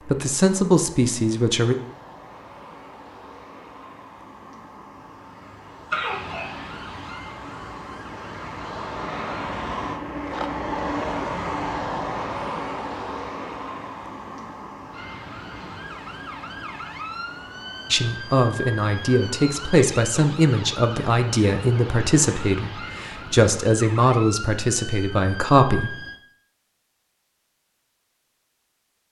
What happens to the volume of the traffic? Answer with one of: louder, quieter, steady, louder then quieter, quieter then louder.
louder then quieter.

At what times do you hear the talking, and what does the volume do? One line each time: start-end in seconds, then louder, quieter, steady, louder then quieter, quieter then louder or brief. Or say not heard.
0.1-1.8 brief
17.9-25.9 steady.